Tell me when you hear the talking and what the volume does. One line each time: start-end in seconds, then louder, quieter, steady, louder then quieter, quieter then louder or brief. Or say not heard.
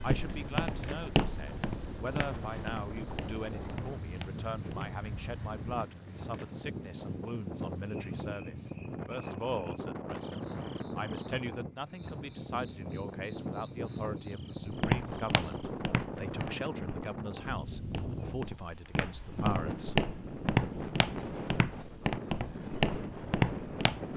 0.0-20.0 steady.